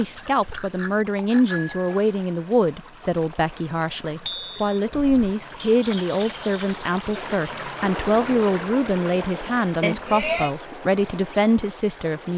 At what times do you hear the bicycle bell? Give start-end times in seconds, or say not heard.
0.5-2.1, 4.2-4.7, 9.8-10.5.